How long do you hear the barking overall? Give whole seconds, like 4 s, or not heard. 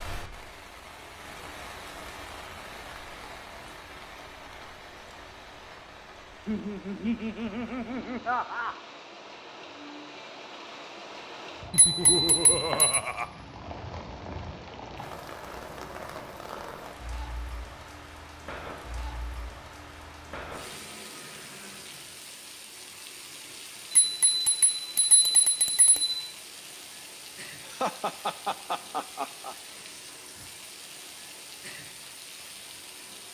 not heard.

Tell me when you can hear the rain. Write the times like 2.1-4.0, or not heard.
0.0-33.2.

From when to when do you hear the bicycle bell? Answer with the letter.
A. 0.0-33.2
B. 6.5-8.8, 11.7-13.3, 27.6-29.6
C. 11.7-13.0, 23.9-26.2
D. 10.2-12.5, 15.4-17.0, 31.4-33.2
C.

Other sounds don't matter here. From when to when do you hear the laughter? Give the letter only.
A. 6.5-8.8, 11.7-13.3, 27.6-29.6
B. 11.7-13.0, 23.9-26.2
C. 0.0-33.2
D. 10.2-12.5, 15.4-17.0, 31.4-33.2
A.